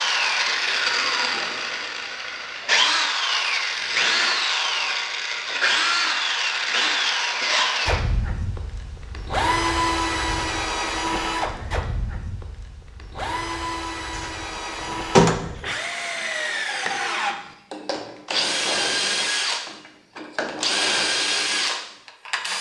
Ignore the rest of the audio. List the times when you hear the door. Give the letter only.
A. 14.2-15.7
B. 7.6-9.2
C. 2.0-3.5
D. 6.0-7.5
A.